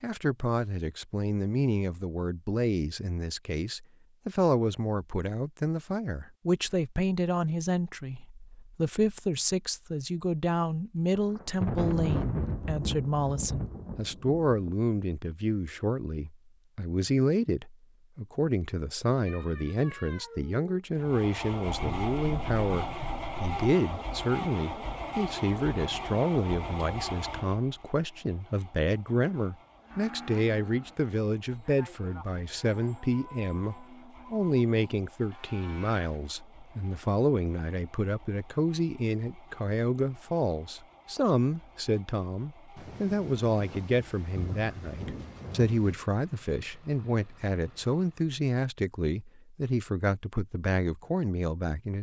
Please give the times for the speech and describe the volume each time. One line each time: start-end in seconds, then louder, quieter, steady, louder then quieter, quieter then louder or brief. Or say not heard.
0.0-51.9 steady.